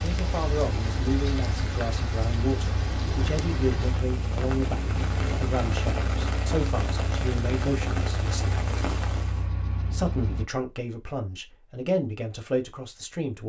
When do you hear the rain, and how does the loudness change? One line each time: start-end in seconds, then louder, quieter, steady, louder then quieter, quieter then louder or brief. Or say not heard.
0.0-9.5 steady.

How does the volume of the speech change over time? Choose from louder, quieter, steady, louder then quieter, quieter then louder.
steady.